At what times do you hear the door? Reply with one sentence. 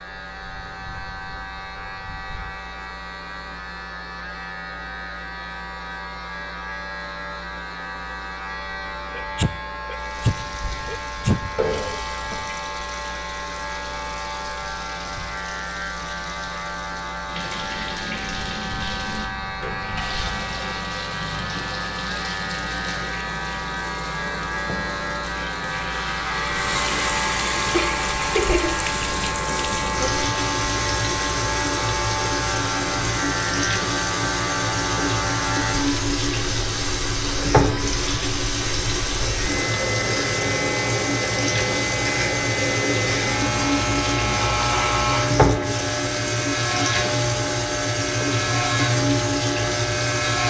The door can't be heard in this clip.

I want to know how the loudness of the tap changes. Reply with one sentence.
The volume of the tap goes up.